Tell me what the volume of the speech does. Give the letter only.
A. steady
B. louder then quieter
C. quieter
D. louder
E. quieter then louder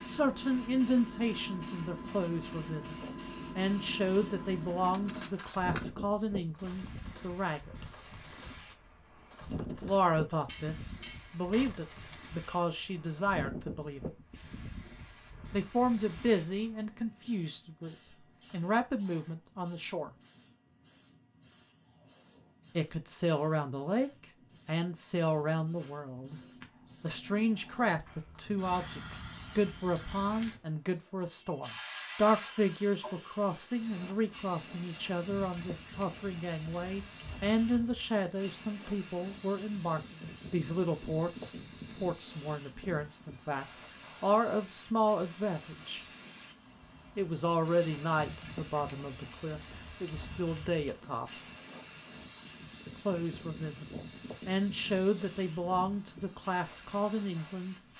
A.